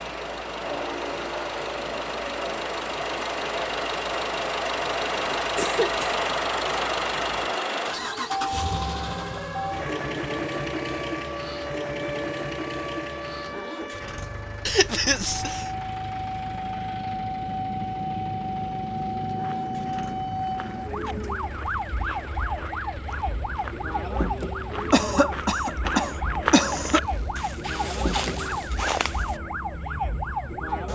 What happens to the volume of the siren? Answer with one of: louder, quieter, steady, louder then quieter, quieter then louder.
louder.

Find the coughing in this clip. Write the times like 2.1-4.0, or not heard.
5.3-6.2, 14.7-15.7, 24.9-27.0.